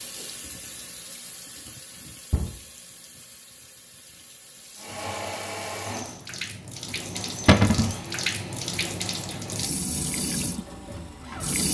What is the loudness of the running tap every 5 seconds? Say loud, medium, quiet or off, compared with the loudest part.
quiet, loud, loud.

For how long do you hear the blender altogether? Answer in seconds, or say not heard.
7 s.